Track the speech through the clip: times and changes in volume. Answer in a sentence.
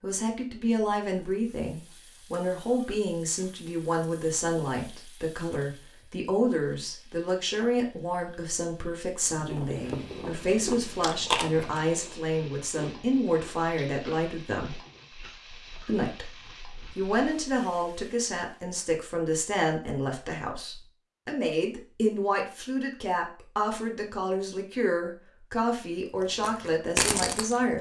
The speech can be heard from 0.0 to 14.8 s, at a steady volume; and from 15.8 to 27.7 s, at a steady volume.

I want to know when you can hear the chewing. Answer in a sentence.
The chewing can be heard from 9.3 to 17.4 s and from 26.4 to 27.7 s.